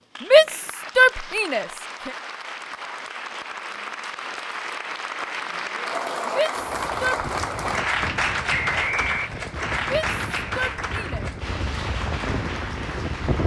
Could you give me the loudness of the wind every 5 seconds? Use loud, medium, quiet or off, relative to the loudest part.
off, medium, loud.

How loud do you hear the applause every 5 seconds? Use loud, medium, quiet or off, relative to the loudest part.
medium, loud, medium.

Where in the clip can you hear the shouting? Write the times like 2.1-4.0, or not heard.
0.3-2.1, 6.3-7.3, 9.9-11.2.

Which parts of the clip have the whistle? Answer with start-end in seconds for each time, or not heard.
8.5-9.3.